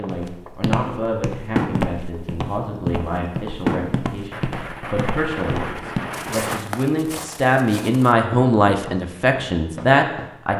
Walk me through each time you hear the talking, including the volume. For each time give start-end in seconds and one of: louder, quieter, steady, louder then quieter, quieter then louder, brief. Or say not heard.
0.0-10.5 louder.